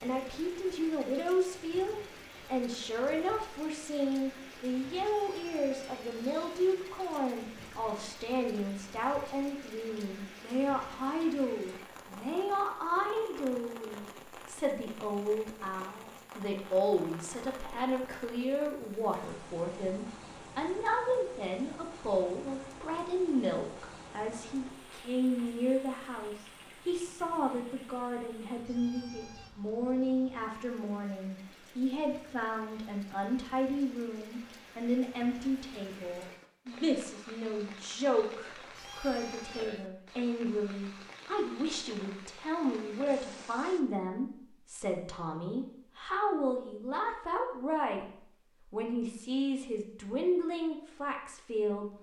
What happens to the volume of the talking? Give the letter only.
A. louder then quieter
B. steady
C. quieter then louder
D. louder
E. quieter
B.